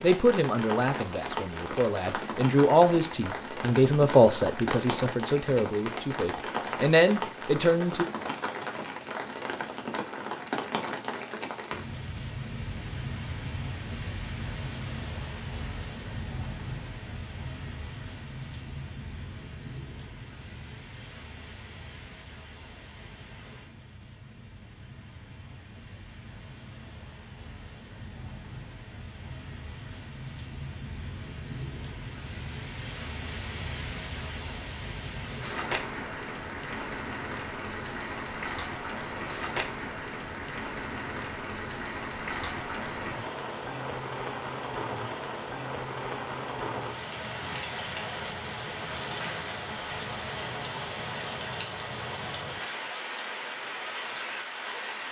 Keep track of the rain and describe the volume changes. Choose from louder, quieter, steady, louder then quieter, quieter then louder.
quieter then louder.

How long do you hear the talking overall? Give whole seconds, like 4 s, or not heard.
8 s.